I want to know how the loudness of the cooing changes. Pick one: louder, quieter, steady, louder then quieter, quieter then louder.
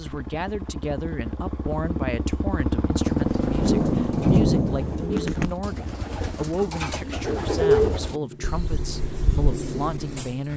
louder then quieter.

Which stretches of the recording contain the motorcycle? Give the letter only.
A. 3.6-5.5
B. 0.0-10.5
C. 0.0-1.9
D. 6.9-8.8
B.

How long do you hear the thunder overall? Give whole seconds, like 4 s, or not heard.
2 s.